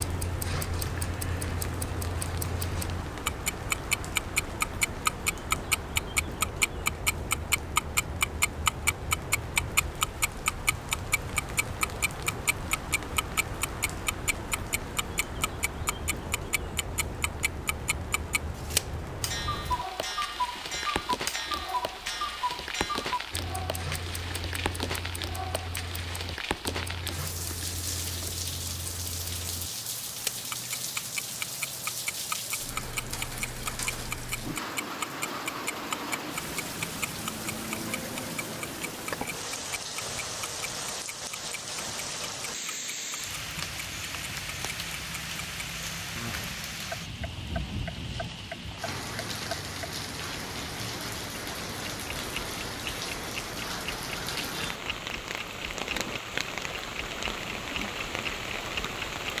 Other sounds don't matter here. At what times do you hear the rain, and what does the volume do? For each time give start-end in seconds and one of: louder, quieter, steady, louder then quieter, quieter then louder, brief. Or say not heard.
0.0-59.3 steady.